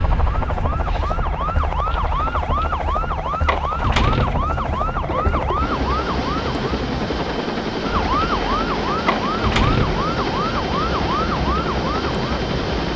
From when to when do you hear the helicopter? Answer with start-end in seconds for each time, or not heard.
0.0-12.9.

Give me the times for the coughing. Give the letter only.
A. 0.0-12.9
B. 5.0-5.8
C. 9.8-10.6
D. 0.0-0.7
B.